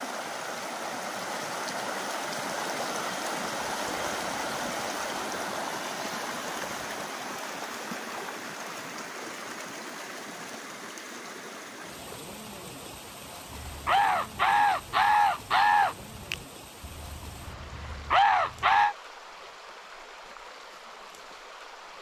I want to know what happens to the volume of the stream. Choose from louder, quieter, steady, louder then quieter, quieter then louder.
quieter.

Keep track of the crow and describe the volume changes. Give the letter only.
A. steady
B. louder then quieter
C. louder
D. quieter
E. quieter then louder
E.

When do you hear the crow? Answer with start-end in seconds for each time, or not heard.
13.5-18.9.